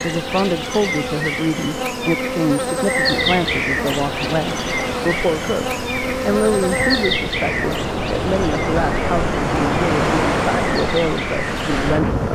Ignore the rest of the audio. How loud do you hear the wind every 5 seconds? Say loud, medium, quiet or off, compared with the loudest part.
medium, loud, loud.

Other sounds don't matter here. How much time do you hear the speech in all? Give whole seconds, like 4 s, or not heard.
12 s.